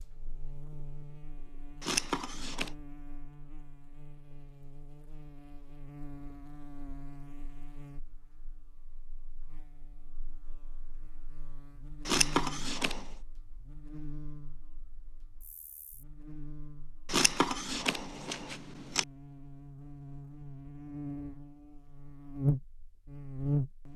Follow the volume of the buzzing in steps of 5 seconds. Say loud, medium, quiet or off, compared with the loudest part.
quiet, quiet, quiet, quiet, loud.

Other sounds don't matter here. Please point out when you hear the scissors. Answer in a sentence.
The scissors can be heard from 1.8 to 2.7 s, from 12.1 to 13.1 s and from 17.1 to 19.1 s.